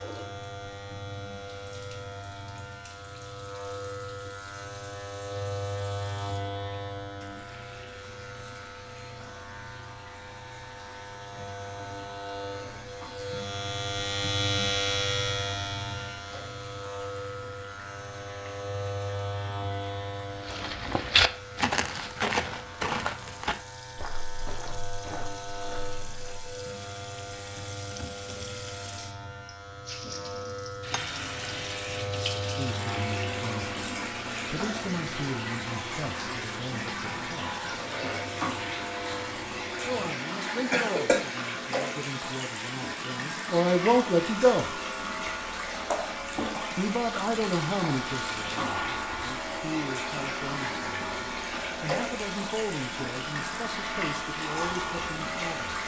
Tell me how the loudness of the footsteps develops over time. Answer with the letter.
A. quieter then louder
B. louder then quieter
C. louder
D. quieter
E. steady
D.